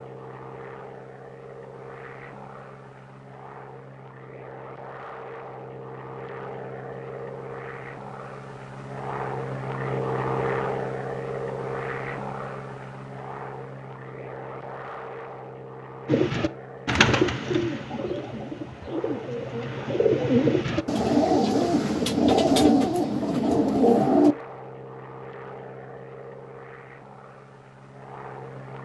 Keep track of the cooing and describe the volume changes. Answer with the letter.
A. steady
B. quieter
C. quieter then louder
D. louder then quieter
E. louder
C.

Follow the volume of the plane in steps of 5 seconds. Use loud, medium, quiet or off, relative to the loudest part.
medium, loud, loud, medium, medium, medium.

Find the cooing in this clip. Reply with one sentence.
You can hear the cooing from 16.1 to 24.4 s.